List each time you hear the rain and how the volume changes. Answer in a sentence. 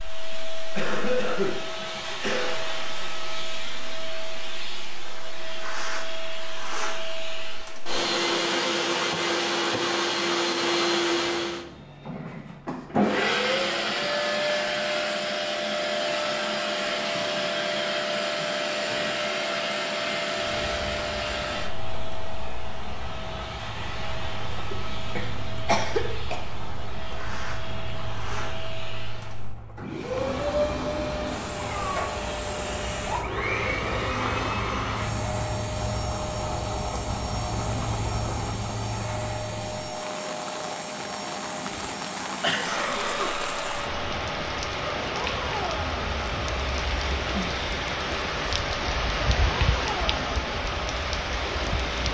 You can hear the rain from 20.5 to 52.0 s, getting louder.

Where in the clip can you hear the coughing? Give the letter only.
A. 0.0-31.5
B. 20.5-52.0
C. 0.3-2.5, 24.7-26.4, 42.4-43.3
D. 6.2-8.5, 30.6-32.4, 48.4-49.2
C.